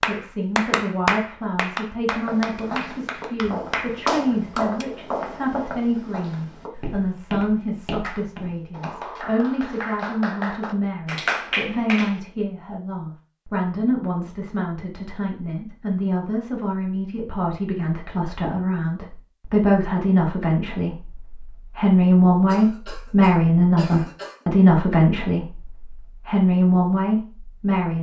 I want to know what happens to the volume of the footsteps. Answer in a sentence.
The loudness of the footsteps goes up, then down.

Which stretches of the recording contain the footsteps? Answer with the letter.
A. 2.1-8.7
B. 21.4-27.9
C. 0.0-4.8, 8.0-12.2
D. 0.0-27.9
A.